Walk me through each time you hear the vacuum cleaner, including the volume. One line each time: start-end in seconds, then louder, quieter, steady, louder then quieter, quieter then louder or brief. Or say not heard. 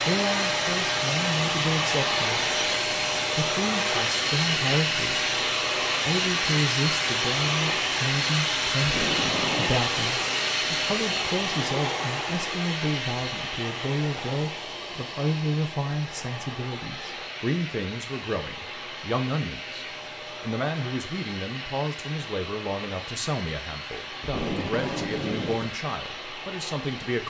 0.0-27.2 quieter.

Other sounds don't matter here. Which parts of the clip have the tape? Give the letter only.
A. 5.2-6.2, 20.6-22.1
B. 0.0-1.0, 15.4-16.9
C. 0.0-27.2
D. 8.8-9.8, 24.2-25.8
D.